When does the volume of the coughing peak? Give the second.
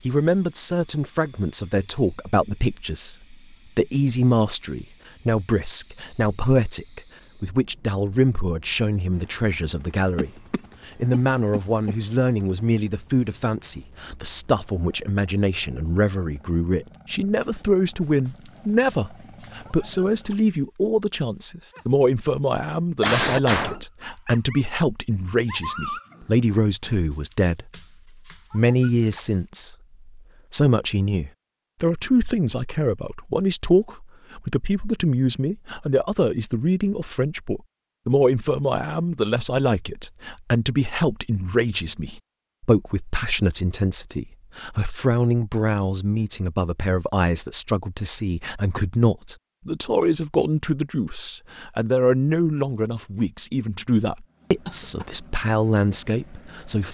23 s.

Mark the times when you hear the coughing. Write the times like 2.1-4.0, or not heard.
10.2-11.9, 23.0-23.8, 54.6-55.2.